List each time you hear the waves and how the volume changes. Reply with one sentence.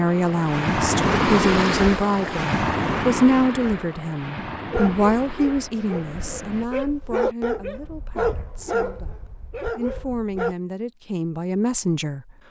You can hear the waves from 0.0 to 6.7 s, getting quieter.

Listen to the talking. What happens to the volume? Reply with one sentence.
The volume of the talking goes down, then up.